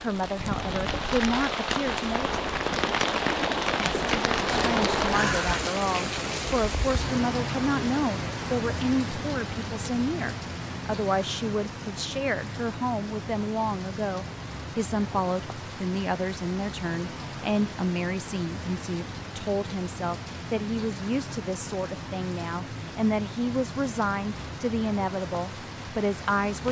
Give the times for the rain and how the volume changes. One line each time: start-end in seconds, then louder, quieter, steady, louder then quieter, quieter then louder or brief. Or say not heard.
0.0-26.6 quieter.